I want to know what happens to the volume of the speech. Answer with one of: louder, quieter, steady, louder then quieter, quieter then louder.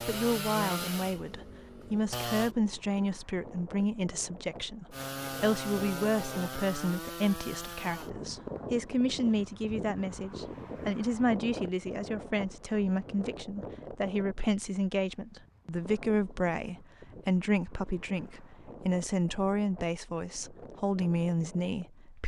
steady.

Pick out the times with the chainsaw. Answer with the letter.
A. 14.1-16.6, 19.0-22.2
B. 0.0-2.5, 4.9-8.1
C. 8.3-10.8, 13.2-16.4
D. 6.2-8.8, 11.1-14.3
B.